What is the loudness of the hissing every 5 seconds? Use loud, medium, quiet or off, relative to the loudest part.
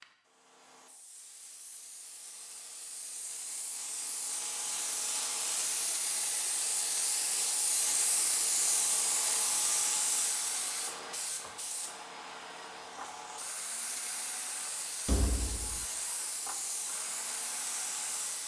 medium, loud, medium, medium.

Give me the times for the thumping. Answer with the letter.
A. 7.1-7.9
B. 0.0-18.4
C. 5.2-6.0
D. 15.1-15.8
D.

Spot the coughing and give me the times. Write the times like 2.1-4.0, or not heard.
not heard.